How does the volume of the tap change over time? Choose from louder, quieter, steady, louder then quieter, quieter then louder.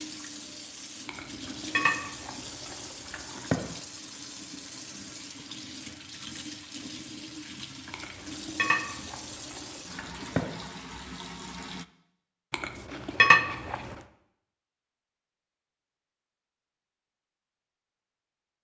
steady.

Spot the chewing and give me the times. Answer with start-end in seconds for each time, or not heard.
1.1-3.8, 7.9-10.4, 12.5-13.9.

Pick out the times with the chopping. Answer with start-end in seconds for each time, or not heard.
not heard.